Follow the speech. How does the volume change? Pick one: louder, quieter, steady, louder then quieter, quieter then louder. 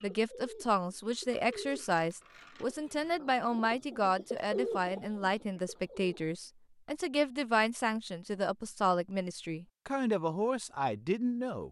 steady.